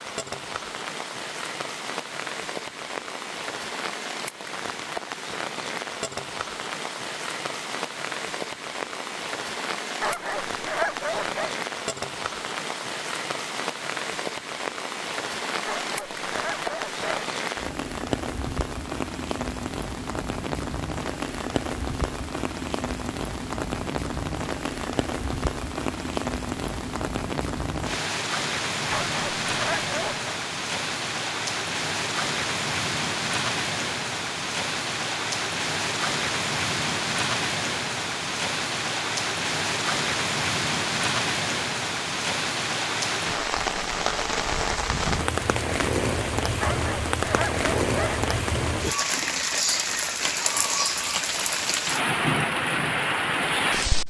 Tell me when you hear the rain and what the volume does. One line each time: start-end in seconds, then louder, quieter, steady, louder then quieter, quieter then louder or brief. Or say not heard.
0.0-54.0 louder.